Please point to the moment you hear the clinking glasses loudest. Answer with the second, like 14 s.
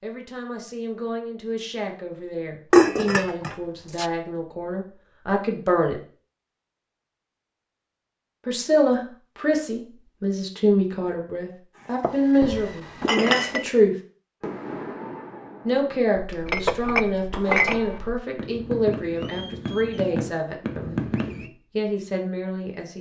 3 s.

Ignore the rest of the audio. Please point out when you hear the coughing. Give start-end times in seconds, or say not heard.
not heard.